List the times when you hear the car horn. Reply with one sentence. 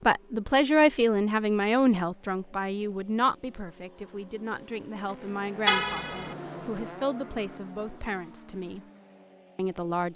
You can hear the car horn from 5.7 to 6.3 s.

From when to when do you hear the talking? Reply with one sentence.
The talking can be heard from 0.1 to 8.8 s and from 9.6 to 10.1 s.